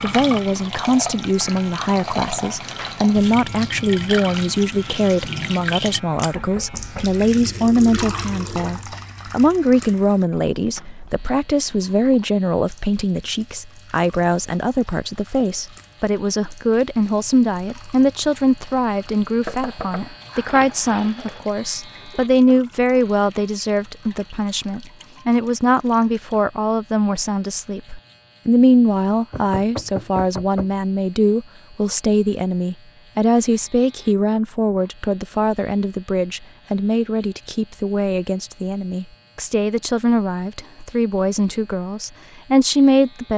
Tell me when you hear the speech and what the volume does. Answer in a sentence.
The speech can be heard from 0.0 to 43.3 s, at a steady volume.